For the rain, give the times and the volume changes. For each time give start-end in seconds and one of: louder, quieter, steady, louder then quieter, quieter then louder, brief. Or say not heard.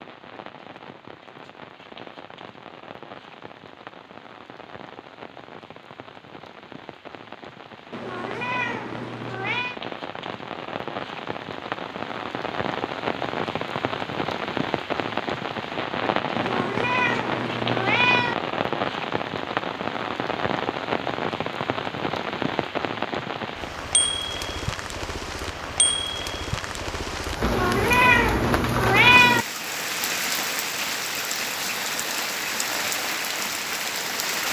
0.0-34.4 louder.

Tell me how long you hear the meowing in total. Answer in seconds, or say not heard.
6 s.